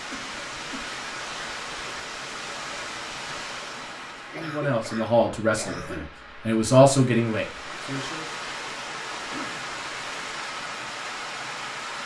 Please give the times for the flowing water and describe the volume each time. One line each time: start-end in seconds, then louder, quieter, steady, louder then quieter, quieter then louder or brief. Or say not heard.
0.0-12.0 quieter then louder.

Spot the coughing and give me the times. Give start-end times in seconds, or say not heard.
0.1-0.9, 4.3-6.1, 9.2-9.7.